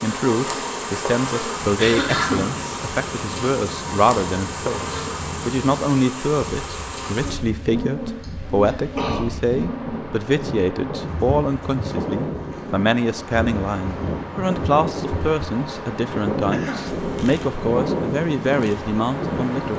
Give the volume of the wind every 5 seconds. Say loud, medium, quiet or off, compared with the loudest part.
medium, medium, loud, loud.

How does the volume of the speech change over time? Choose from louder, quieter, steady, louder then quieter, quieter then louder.
steady.